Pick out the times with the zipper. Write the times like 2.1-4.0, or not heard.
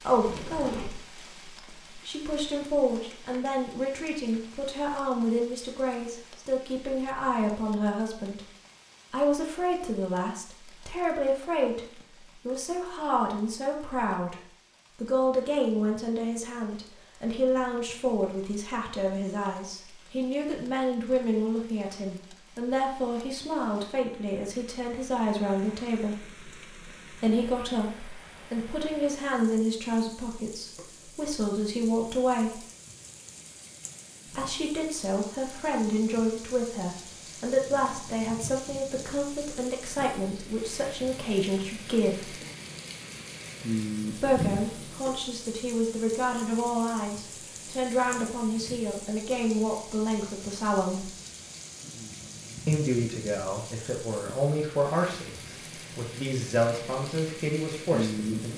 0.1-1.1.